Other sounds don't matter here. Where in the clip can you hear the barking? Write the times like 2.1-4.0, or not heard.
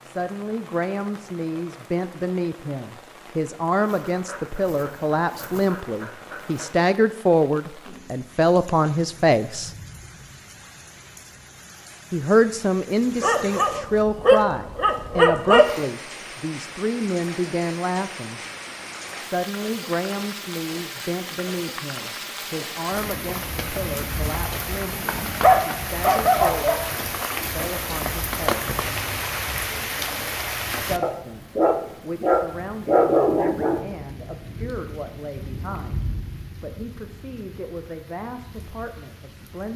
3.8-6.7, 13.2-15.8, 25.3-26.9, 31.0-33.8.